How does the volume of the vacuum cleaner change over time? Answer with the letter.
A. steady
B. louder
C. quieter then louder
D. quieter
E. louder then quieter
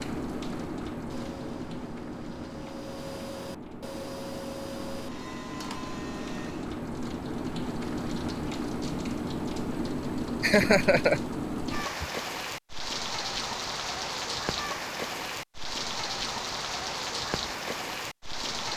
B.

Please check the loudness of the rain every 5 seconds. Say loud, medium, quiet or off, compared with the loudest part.
medium, loud, loud, loud.